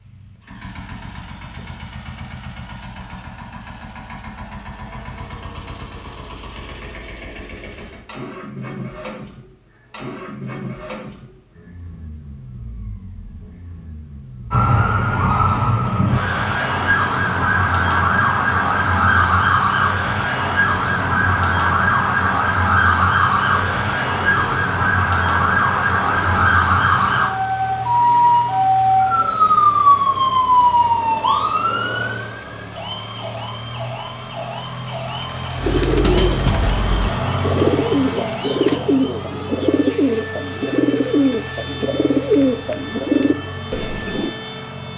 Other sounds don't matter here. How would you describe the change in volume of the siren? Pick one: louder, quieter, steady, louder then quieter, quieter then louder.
quieter.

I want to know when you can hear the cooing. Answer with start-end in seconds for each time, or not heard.
35.5-44.4.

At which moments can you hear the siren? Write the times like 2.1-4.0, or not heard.
14.5-44.9.